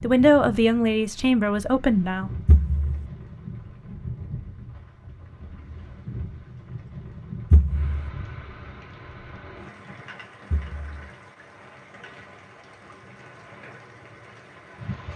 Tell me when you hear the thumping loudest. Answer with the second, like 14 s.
8 s.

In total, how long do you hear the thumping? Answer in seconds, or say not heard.
2 s.